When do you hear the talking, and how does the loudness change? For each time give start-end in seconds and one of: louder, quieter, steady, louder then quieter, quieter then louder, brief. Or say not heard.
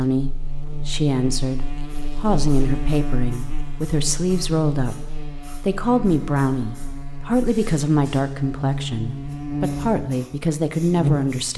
0.0-11.5 steady.